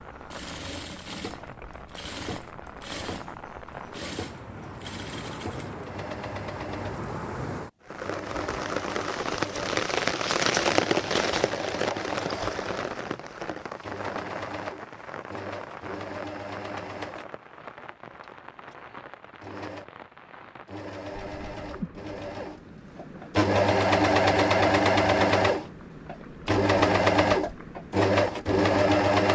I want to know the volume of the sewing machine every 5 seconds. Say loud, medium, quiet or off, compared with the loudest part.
quiet, quiet, quiet, quiet, loud, loud.